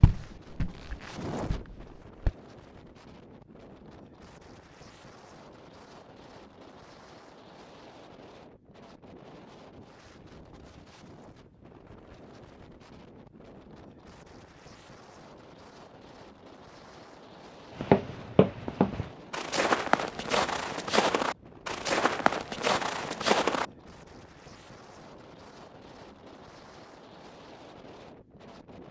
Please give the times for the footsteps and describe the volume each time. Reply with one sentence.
The footsteps can be heard briefly from 0.0 to 2.3 s; and from 17.8 to 23.6 s, at a steady volume.